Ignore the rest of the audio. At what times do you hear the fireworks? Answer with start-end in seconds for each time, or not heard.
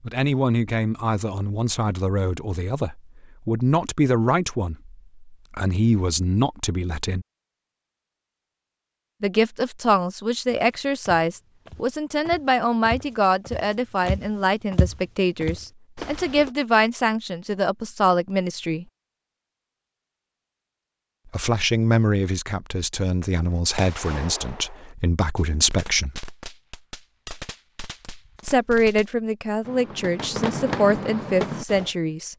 23.4-31.9.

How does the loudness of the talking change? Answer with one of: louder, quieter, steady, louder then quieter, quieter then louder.
steady.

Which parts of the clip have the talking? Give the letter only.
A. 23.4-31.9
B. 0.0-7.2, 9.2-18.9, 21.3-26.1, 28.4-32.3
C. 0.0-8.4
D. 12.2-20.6
B.